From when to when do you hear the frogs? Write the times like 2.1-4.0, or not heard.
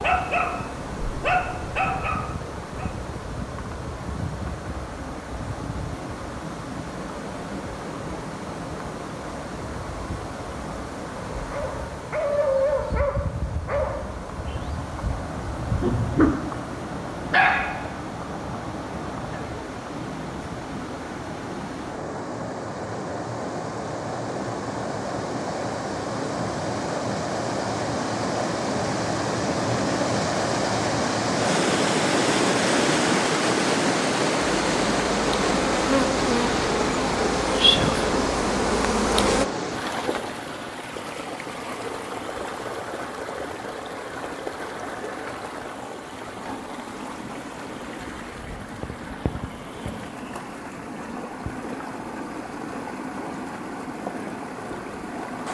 not heard.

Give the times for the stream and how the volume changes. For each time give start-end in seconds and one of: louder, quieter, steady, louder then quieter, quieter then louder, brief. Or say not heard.
0.0-55.4 louder then quieter.